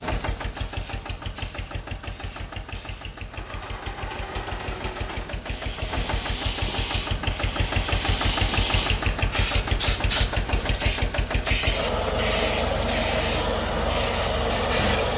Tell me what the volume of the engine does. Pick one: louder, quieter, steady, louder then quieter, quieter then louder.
louder.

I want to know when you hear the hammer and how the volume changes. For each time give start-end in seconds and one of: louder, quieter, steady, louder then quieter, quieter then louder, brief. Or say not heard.
not heard.